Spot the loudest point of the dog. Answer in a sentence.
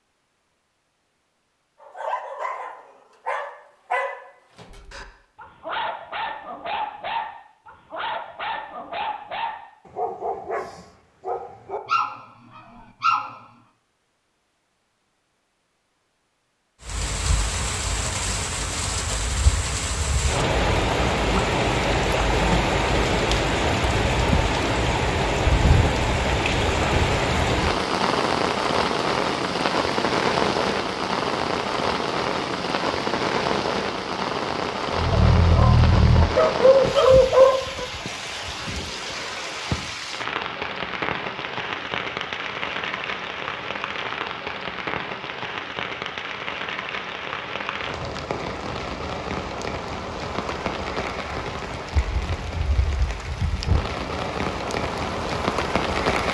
The volume of the dog peaks at 37 seconds.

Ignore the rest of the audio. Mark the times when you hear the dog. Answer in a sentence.
The dog can be heard from 1.8 to 13.4 s and from 35.0 to 37.9 s.